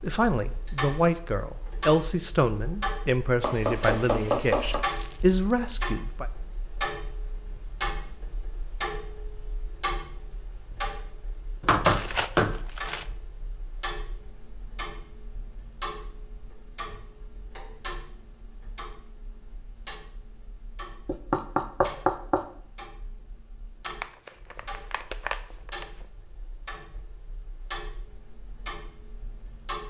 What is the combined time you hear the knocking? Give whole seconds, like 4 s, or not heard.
4 s.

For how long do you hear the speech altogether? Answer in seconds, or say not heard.
6 s.